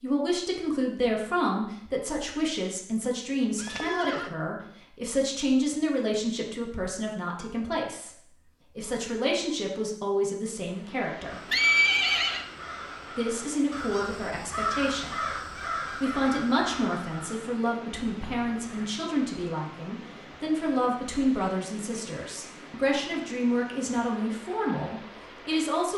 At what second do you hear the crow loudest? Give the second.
15 s.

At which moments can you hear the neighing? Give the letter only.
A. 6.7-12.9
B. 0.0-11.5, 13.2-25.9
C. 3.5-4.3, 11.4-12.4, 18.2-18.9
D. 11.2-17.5
C.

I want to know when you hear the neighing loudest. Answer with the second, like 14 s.
12 s.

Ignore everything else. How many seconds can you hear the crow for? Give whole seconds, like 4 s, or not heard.
6 s.